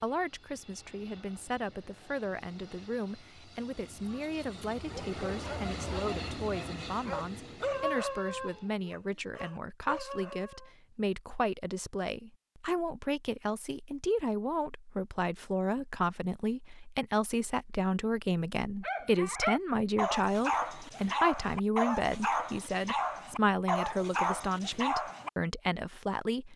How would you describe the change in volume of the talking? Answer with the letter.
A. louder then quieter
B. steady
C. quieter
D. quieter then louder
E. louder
E.